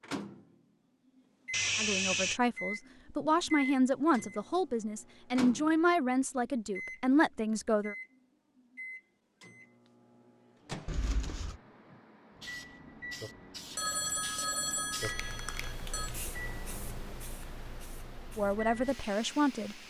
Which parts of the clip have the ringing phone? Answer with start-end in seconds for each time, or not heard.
1.5-2.4, 10.8-11.6, 13.8-16.1.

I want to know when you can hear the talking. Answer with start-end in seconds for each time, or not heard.
1.8-8.0, 18.4-19.8.